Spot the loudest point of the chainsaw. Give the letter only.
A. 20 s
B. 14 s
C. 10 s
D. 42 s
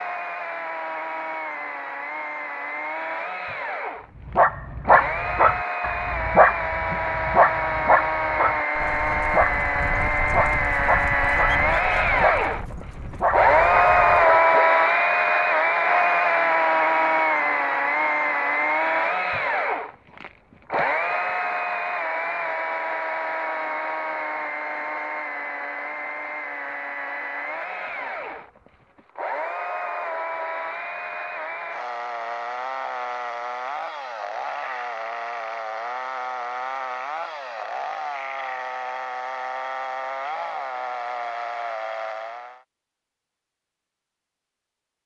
B.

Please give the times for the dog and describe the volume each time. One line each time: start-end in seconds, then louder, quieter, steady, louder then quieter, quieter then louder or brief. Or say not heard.
4.2-14.7 quieter.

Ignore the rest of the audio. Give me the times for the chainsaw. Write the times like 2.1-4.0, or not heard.
0.0-42.6.